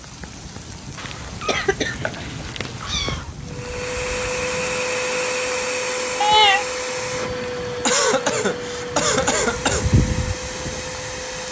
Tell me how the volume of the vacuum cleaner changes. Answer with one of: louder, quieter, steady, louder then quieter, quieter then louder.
quieter.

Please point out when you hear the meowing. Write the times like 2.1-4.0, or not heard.
0.9-3.3, 6.2-6.7.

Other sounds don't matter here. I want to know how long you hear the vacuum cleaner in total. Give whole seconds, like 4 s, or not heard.
8 s.